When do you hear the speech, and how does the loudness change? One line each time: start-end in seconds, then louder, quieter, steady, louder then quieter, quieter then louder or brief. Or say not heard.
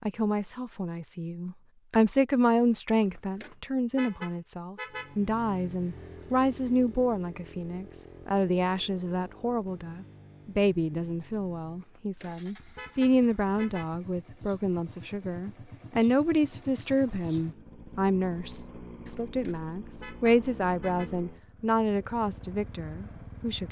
0.0-23.6 steady.